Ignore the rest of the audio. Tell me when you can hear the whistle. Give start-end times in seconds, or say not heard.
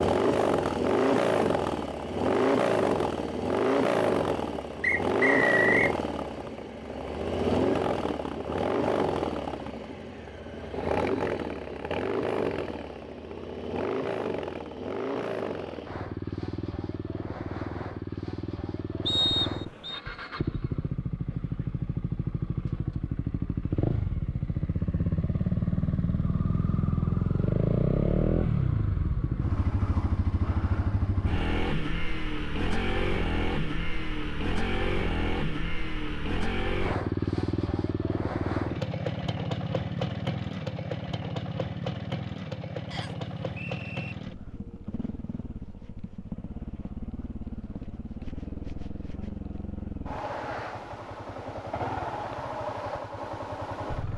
4.8-6.0, 19.1-20.0, 42.9-44.1.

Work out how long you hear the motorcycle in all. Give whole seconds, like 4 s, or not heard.
54 s.